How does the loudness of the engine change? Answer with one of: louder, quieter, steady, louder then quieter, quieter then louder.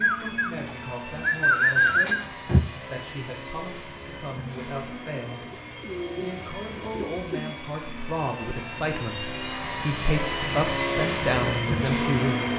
louder.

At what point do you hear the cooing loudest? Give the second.
2 s.